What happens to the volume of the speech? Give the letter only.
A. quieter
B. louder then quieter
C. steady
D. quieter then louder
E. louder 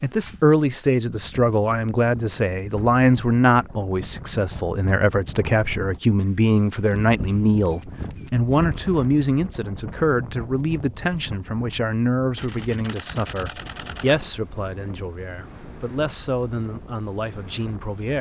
A.